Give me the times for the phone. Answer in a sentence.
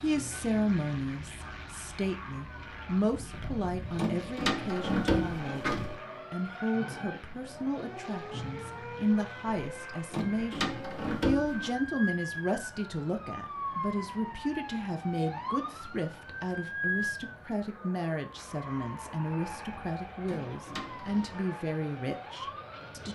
The phone can't be heard in this clip.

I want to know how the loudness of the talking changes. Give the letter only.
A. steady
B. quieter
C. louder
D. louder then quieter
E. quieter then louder
A.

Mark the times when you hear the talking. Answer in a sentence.
The talking can be heard from 0.0 to 23.1 s.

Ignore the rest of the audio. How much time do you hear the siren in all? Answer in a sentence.
You can hear the siren for 23 seconds altogether.